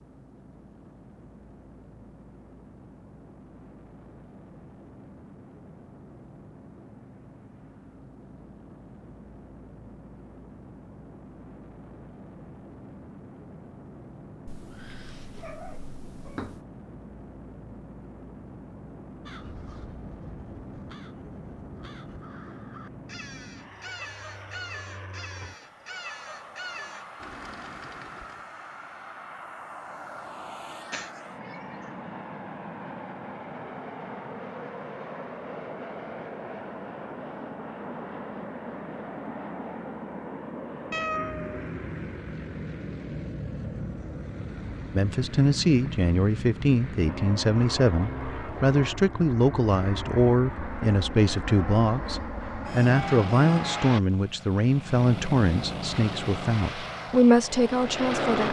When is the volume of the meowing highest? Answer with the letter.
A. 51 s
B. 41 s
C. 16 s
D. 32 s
B.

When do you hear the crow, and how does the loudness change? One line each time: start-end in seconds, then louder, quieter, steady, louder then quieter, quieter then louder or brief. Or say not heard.
19.2-28.4 louder.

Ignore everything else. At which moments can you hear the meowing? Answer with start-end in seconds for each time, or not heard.
14.4-16.6, 30.9-31.6, 40.9-41.7.